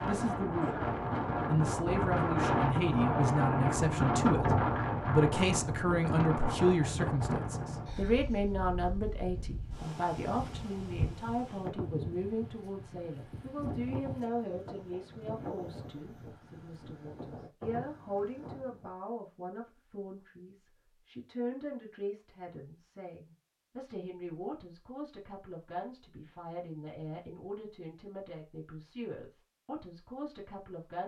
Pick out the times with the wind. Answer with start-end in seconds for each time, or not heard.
0.0-18.9.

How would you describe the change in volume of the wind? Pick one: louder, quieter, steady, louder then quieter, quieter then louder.
quieter.